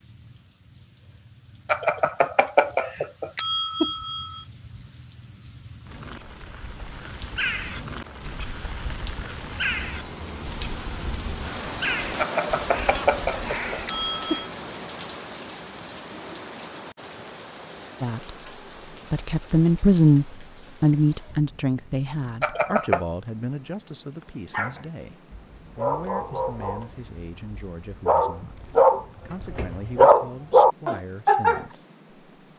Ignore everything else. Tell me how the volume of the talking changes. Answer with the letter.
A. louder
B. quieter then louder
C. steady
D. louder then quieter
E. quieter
E.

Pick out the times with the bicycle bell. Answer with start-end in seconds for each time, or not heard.
1.6-4.4, 12.2-14.5, 22.4-23.1.